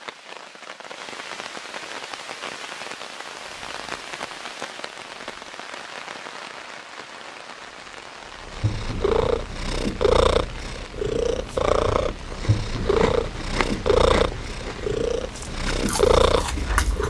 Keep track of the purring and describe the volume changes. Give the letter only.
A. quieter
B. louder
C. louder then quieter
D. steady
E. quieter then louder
D.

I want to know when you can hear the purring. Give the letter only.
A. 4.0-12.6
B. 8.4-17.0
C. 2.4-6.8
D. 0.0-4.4
B.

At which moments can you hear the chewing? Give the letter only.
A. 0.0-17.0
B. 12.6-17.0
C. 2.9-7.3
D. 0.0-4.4
B.